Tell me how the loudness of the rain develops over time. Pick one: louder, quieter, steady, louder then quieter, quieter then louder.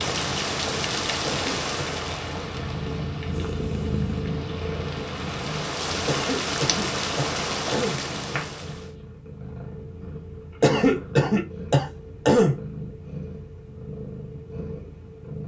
quieter then louder.